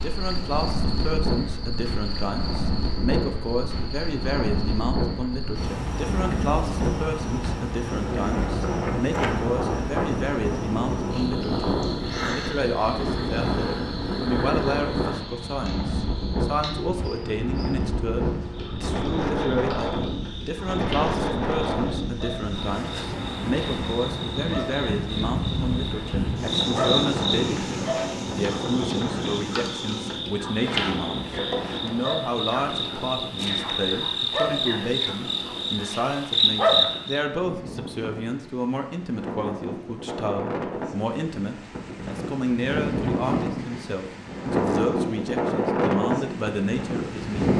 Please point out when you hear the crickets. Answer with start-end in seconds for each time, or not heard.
0.0-37.2.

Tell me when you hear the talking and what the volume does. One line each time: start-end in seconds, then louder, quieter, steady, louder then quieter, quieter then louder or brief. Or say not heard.
0.0-47.5 steady.